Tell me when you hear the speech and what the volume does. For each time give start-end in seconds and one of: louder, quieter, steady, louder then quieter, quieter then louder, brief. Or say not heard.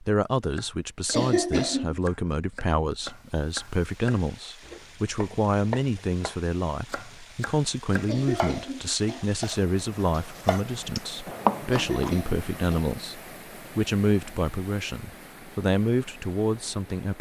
0.0-17.1 steady.